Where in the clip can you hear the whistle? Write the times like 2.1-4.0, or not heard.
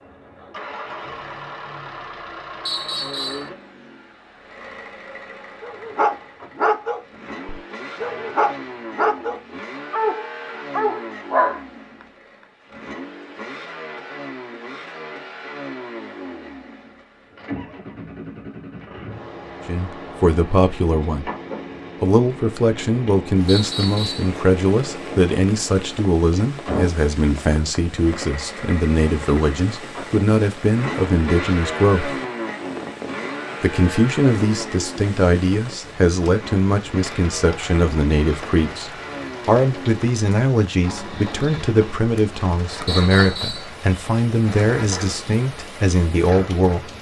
2.6-3.5, 23.4-24.3, 42.9-43.7.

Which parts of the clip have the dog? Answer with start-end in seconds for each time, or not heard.
5.6-11.6.